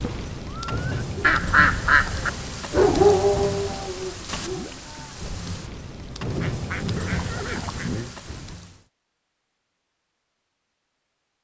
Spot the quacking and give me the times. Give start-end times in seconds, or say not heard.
1.2-2.3, 6.4-8.0.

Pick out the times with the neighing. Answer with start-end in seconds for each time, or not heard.
0.5-0.9, 6.2-8.1.